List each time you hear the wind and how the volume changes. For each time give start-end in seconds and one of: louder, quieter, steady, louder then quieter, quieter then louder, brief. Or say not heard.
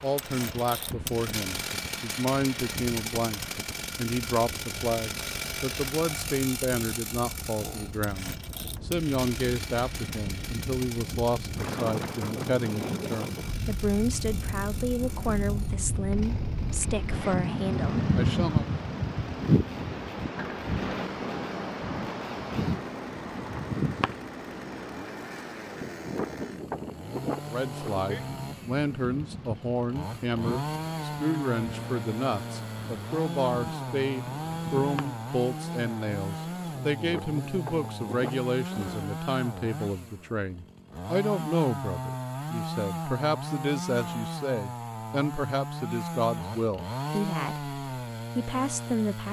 0.0-39.1 louder then quieter.